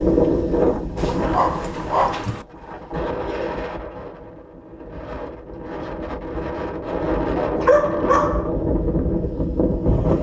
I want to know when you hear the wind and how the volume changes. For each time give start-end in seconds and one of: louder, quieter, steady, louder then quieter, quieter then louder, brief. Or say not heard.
0.0-10.1 quieter then louder.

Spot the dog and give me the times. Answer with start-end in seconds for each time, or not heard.
0.9-2.5, 7.4-8.5.